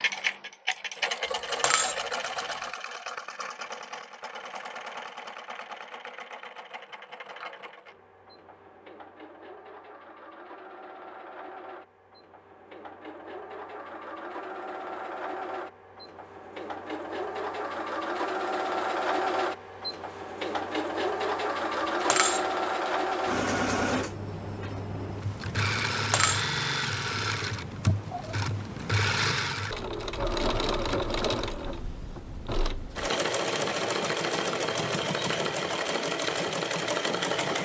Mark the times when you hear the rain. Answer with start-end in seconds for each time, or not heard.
not heard.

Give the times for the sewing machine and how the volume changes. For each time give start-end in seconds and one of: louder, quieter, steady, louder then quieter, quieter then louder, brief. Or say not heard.
0.0-37.6 quieter then louder.